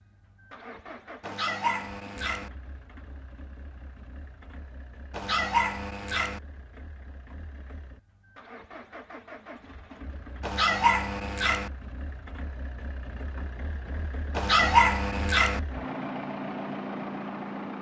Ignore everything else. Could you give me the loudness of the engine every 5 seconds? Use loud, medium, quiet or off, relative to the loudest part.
quiet, quiet, medium, loud.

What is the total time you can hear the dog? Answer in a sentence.
The dog can be heard for 5 seconds in total.